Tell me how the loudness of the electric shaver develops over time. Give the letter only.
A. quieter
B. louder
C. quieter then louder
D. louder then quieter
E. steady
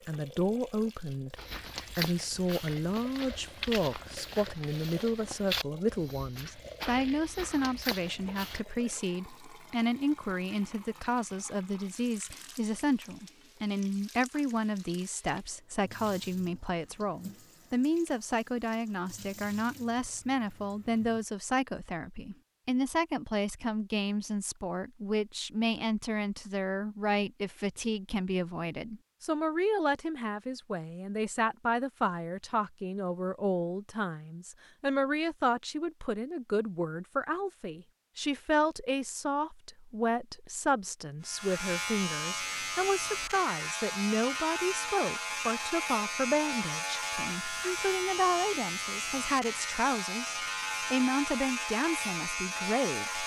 E.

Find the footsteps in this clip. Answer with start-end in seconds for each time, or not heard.
1.4-8.6.